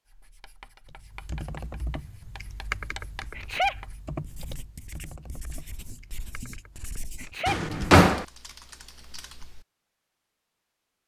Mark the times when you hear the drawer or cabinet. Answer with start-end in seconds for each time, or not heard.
7.5-8.2.